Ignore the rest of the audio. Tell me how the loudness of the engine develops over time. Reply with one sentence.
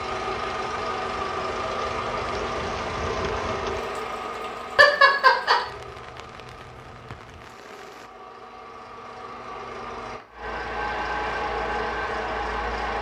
The volume of the engine goes down, then up.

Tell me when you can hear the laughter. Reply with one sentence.
The laughter can be heard from 4.8 to 5.5 s.